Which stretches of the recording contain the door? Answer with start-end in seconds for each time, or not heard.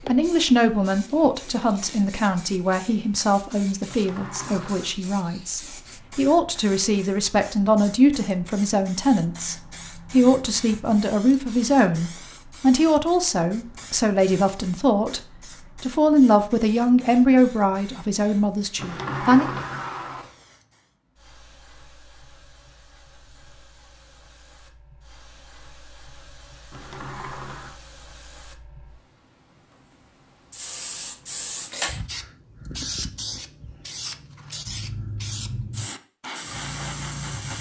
3.9-5.0, 18.8-20.4, 26.7-27.8.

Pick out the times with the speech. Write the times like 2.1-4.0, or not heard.
0.1-19.5.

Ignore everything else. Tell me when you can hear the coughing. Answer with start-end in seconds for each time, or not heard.
not heard.